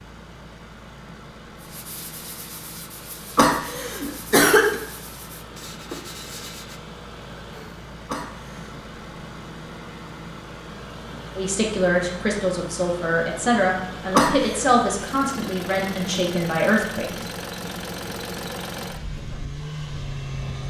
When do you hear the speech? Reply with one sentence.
The speech can be heard from 11.3 to 17.2 s.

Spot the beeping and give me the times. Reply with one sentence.
The beeping can't be heard in this clip.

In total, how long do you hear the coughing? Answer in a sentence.
You can hear the coughing for 3 seconds altogether.